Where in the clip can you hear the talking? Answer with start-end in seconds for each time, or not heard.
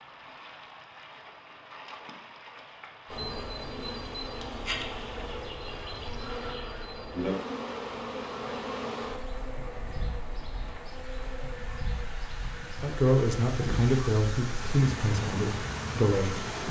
12.8-16.5.